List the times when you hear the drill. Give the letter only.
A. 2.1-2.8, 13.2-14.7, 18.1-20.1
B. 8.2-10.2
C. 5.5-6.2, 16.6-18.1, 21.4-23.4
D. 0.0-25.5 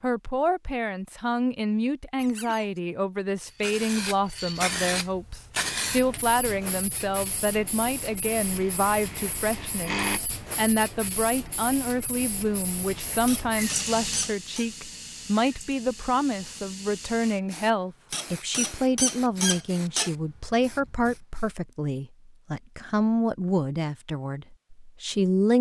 B.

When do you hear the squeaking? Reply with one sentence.
You can hear the squeaking from 2.1 to 2.8 s, from 13.2 to 14.7 s and from 18.1 to 20.1 s.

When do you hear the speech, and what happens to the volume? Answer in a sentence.
You can hear the speech from 0.0 to 25.5 s, at a steady volume.